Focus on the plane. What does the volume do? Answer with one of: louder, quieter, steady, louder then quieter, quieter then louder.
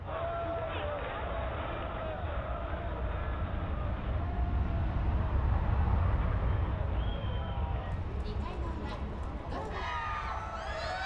louder then quieter.